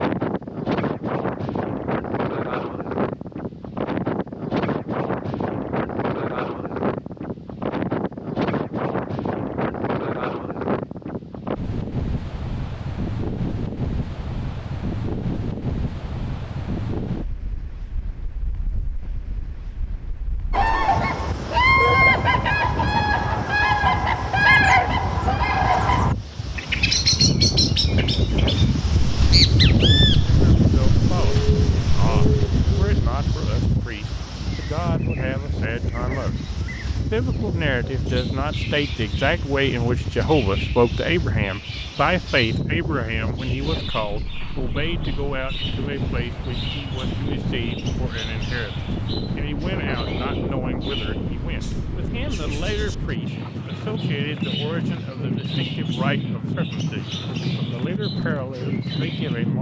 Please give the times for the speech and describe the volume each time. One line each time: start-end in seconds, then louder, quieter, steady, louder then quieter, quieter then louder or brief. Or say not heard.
30.2-59.5 louder then quieter.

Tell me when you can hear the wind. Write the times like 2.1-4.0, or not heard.
0.0-59.5.